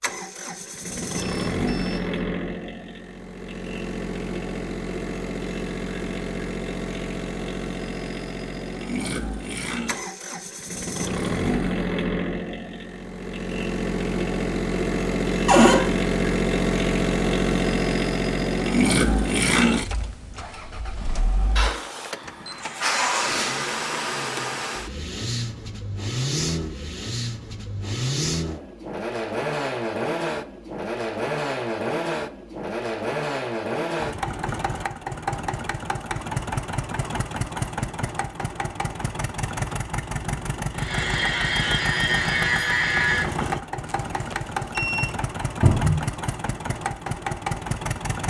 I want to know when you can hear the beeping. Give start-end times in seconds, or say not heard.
1.1-2.2, 22.2-23.2, 43.9-45.1.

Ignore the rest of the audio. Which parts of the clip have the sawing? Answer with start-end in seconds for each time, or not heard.
40.8-43.2.